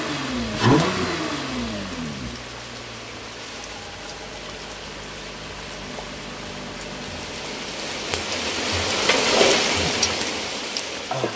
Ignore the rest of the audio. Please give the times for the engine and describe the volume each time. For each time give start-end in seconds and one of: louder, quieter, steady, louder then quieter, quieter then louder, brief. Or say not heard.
0.0-8.2 quieter.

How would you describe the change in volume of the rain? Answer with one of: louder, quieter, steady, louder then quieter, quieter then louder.
louder.